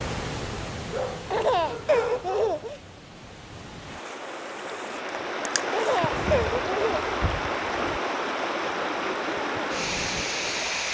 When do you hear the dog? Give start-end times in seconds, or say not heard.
0.9-2.6, 6.1-8.0.